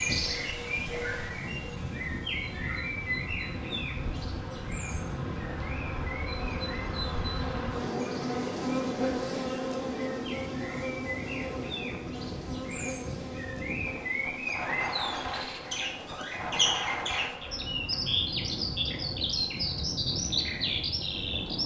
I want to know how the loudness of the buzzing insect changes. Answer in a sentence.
The loudness of the buzzing insect goes up, then down.